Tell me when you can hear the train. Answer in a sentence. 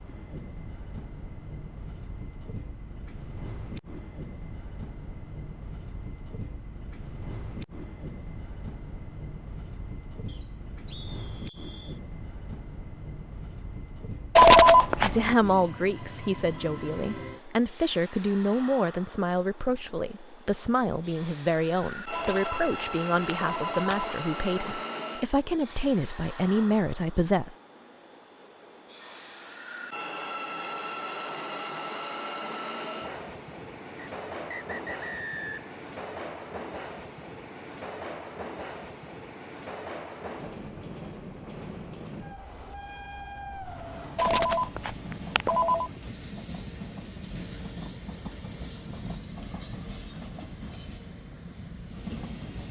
You can hear the train from 0.0 to 52.6 s.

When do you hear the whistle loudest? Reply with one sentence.
The loudest moment of the whistle is at 35 seconds.